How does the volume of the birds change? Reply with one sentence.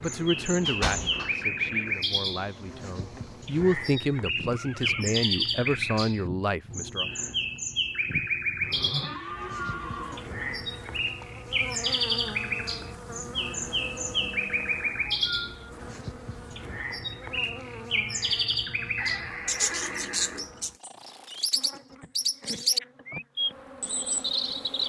The loudness of the birds stays about the same.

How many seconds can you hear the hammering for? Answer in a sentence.
The hammering can't be heard in this clip.